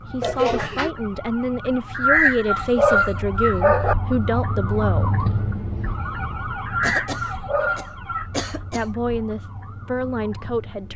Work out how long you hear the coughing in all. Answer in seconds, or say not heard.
3 s.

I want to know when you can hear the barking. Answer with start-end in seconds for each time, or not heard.
1.9-4.0, 6.7-8.2.